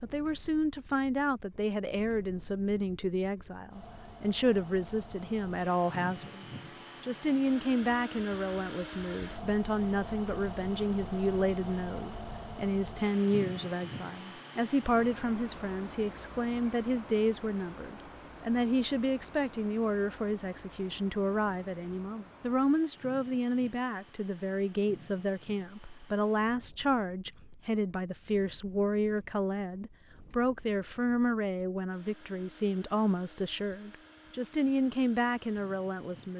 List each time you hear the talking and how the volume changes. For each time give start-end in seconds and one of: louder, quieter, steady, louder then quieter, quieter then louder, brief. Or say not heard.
0.0-36.3 steady.